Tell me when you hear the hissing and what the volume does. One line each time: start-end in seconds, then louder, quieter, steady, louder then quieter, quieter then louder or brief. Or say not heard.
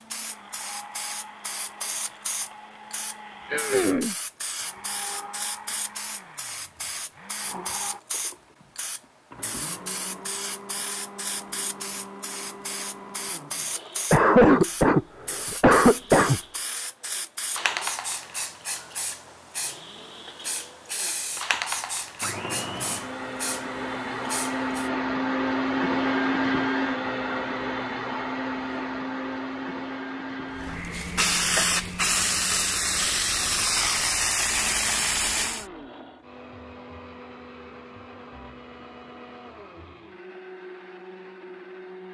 0.1-24.9 steady
30.6-35.6 steady.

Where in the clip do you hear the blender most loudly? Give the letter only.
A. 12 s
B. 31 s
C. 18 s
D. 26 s
D.